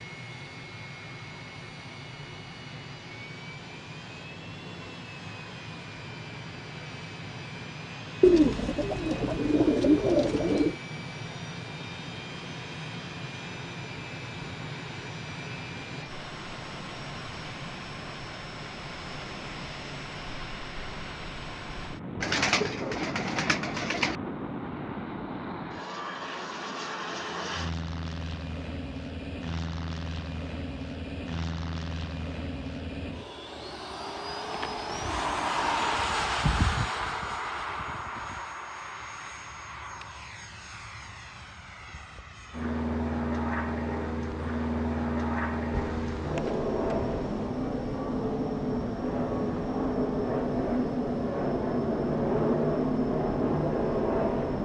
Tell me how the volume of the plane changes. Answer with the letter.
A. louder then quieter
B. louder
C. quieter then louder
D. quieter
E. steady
B.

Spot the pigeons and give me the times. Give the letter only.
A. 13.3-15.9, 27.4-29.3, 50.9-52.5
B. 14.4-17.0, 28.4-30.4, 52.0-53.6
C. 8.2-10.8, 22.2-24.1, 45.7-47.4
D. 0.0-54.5
C.